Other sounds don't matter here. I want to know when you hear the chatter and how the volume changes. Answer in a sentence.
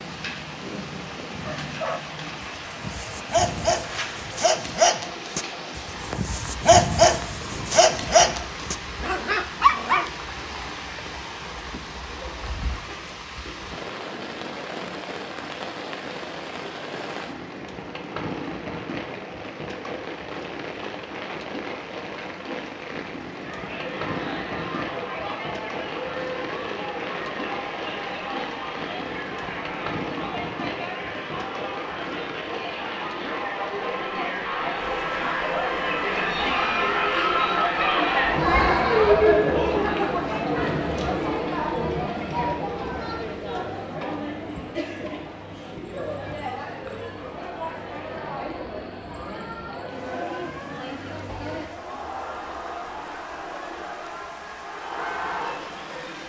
The chatter can be heard from 23.2 to 56.2 s, getting louder then quieter.